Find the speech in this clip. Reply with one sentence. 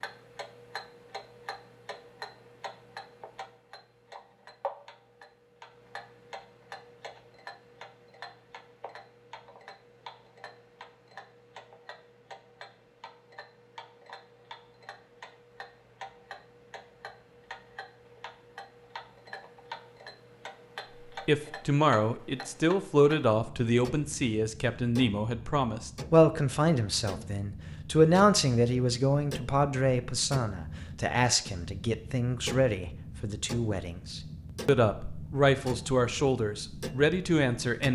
The speech can be heard from 21.2 to 37.9 s.